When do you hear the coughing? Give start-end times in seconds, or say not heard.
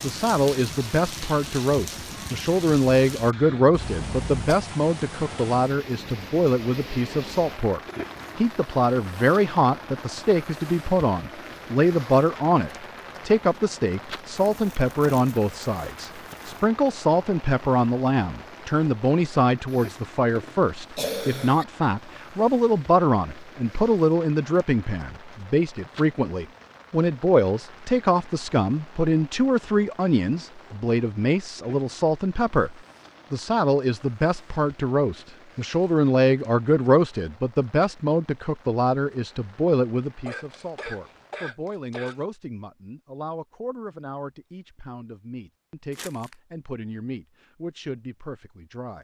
3.7-4.3, 19.7-21.6, 40.2-42.2.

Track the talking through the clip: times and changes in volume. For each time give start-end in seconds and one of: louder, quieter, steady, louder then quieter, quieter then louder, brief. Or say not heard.
0.0-49.0 quieter.